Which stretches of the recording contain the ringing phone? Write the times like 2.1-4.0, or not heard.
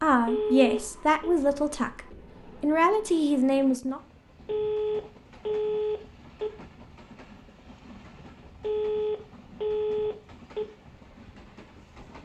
0.2-1.4, 4.5-6.5, 8.6-10.7.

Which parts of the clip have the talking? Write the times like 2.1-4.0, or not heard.
0.0-2.0, 2.6-4.0.